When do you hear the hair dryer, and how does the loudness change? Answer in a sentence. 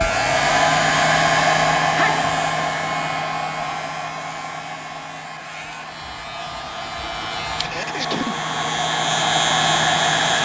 The hair dryer can be heard from 0.0 to 10.4 s, getting quieter then louder.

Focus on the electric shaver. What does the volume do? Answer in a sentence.
The loudness of the electric shaver goes down, then up.